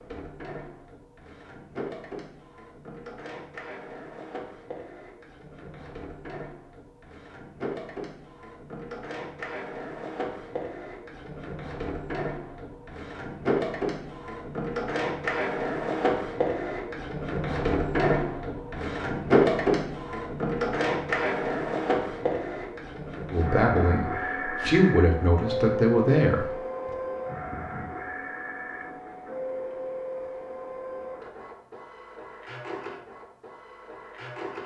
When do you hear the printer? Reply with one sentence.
The printer can be heard from 0.0 to 34.6 s.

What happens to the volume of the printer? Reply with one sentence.
The loudness of the printer goes up, then down.